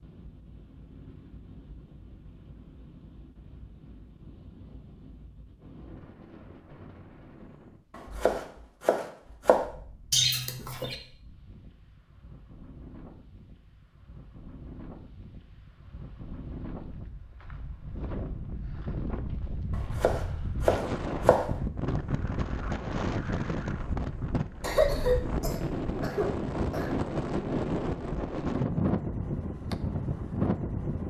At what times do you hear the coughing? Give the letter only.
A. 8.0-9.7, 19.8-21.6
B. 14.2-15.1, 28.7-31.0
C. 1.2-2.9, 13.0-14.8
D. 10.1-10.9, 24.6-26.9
D.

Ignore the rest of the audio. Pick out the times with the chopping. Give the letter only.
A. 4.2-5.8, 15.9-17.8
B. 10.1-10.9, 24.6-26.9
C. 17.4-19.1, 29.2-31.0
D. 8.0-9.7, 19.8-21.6
D.